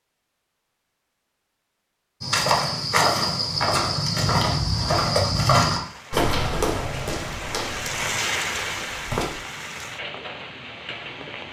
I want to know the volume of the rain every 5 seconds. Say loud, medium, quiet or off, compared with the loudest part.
off, loud, medium.